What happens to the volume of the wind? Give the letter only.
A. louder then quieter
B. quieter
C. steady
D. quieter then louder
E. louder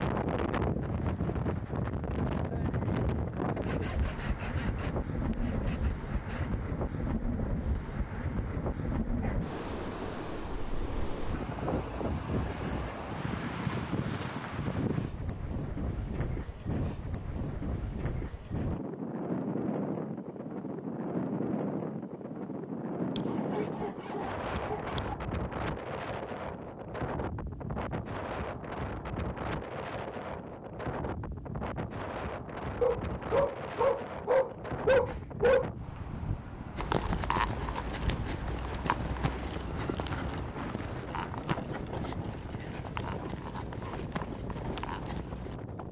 B.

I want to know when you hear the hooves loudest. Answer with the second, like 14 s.
37 s.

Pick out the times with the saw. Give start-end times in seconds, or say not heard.
3.5-6.5, 23.1-25.1.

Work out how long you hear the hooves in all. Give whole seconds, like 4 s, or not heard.
9 s.